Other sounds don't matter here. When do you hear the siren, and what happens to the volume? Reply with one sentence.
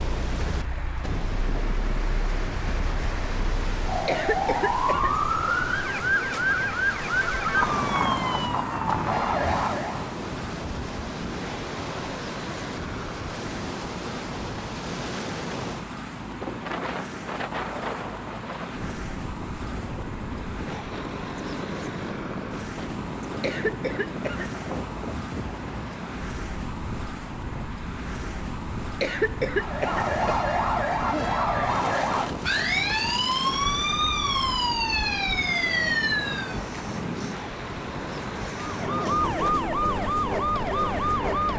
You can hear the siren from 0.0 to 10.2 s, getting louder; from 29.5 to 36.6 s, at a steady volume; and briefly from 38.6 to 41.5 s.